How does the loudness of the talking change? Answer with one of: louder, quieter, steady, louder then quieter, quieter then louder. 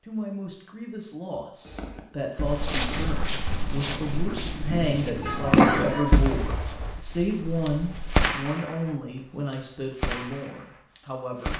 louder then quieter.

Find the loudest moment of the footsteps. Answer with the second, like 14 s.
3 s.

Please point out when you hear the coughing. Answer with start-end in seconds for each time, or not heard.
5.2-6.0.